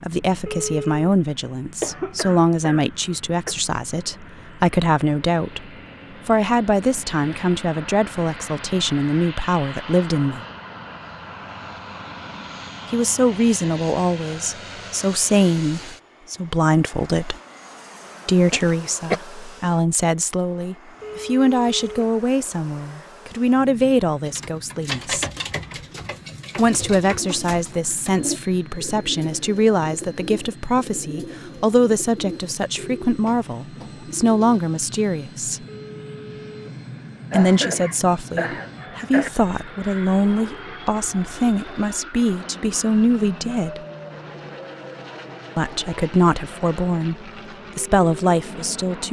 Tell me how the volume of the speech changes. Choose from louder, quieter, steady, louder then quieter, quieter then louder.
steady.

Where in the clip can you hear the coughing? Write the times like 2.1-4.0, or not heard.
1.8-3.5, 18.5-19.2, 37.3-39.3.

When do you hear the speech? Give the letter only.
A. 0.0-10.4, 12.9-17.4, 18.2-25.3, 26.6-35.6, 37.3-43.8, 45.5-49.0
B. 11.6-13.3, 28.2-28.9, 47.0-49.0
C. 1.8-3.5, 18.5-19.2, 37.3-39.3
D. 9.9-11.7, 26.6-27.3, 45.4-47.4
A.